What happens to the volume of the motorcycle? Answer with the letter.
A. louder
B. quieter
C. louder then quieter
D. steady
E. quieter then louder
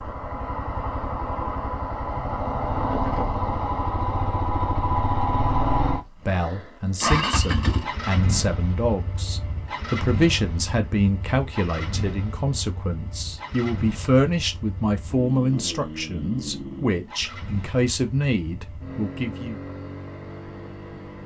B.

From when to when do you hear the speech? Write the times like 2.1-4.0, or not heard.
6.2-19.6.